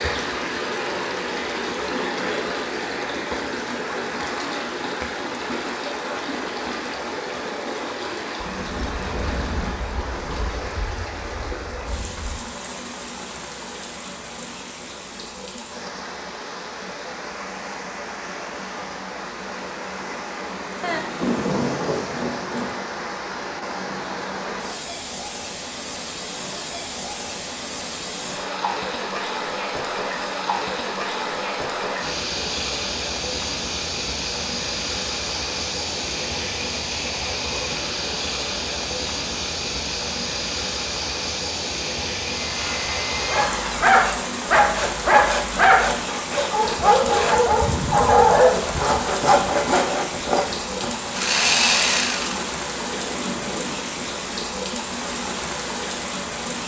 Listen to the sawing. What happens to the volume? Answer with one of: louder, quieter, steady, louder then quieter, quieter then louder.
louder.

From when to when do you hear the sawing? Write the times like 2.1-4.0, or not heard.
42.4-52.5.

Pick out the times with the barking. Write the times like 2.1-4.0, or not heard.
43.3-48.8.